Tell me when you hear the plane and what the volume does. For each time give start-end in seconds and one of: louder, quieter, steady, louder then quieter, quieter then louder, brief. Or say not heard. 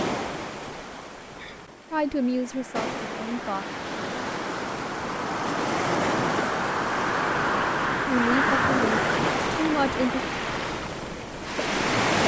2.0-9.2 louder.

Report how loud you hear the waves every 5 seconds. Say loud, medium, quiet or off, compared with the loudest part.
medium, loud, loud.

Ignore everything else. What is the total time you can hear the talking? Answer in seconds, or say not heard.
4 s.